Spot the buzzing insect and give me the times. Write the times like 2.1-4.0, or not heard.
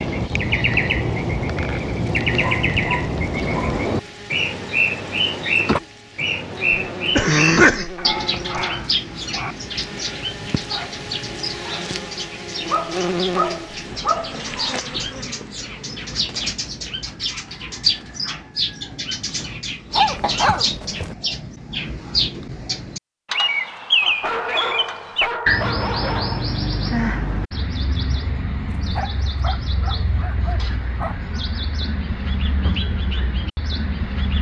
0.0-16.2.